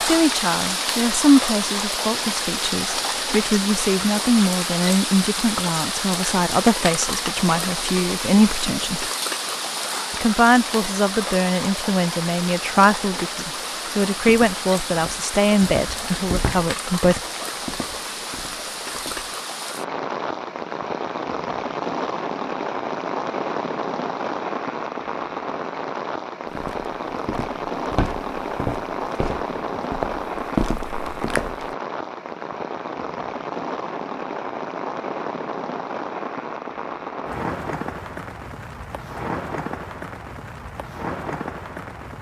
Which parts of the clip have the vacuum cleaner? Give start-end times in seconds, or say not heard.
not heard.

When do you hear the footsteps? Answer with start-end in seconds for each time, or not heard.
14.2-19.4, 26.5-31.8.